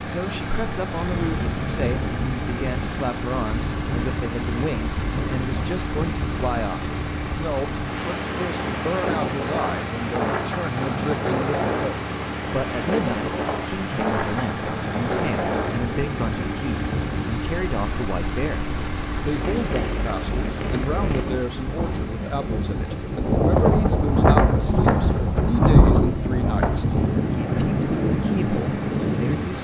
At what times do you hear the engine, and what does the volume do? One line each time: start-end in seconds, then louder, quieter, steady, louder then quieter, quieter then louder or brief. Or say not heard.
0.0-29.5 quieter.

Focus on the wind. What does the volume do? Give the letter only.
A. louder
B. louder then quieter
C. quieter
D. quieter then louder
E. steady
A.